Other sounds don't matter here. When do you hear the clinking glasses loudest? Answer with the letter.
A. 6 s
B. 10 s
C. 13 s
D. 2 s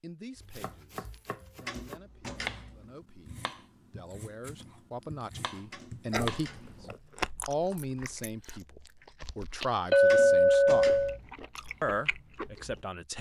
B.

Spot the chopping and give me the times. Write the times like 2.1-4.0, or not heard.
0.3-7.0.